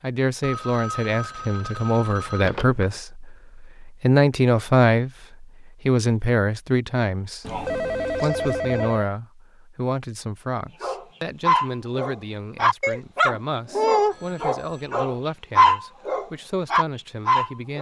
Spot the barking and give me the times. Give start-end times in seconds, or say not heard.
10.8-17.7.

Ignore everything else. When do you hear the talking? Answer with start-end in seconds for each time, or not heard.
0.0-17.7.